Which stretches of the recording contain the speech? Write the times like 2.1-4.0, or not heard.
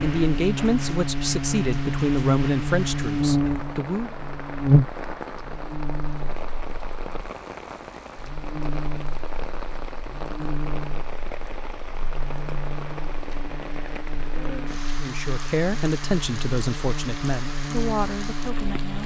0.0-4.2, 15.0-19.0.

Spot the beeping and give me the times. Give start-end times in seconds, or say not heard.
not heard.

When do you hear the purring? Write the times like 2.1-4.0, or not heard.
not heard.